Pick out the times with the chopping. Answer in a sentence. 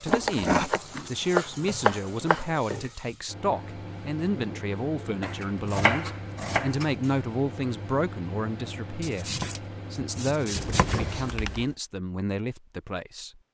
The chopping can be heard from 0.1 to 2.5 s, from 5.2 to 7.0 s and from 9.0 to 11.0 s.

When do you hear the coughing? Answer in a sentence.
You can hear the coughing from 0.1 to 1.0 s and from 10.6 to 11.8 s.